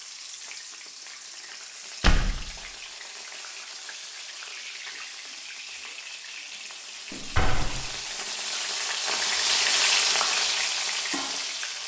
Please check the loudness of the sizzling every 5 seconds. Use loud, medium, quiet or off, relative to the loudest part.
quiet, loud, loud.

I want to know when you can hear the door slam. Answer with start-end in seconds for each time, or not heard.
2.0-2.5, 7.1-7.9.